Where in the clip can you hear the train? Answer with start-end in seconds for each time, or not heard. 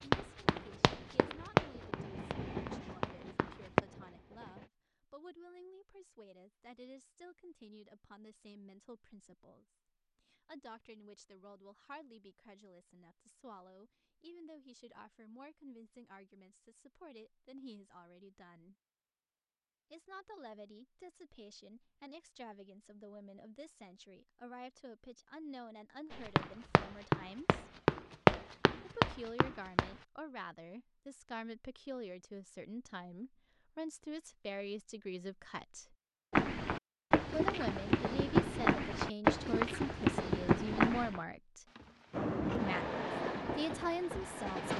0.0-4.7, 42.1-44.7.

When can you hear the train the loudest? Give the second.
43 s.